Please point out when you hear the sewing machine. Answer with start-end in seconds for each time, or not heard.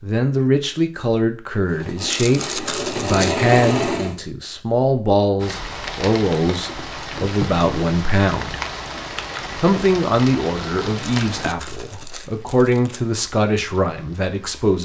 1.6-4.2.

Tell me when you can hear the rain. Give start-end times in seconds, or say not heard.
5.4-14.8.